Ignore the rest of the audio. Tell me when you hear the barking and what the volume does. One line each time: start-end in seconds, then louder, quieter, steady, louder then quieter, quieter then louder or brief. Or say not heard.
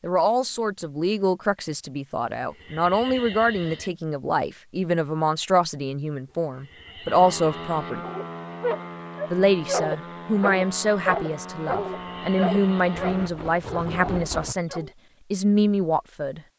8.0-14.9 quieter.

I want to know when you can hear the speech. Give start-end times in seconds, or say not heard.
0.0-8.1, 9.3-16.4.